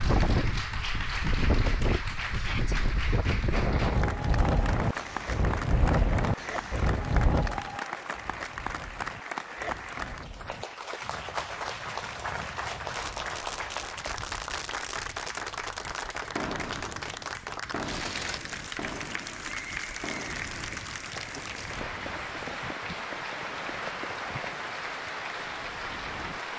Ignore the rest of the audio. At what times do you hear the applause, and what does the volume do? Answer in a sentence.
You can hear the applause from 0.0 to 26.5 s, at a steady volume.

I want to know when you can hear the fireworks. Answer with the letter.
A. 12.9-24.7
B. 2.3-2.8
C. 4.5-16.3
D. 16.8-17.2
A.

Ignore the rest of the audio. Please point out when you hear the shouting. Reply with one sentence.
You can hear the shouting from 2.3 to 2.8 s.